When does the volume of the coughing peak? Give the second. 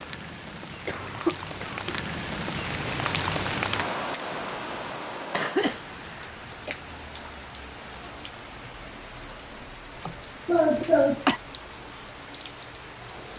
11 s.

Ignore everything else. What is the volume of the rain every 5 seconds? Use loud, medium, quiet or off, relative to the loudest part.
loud, medium, medium.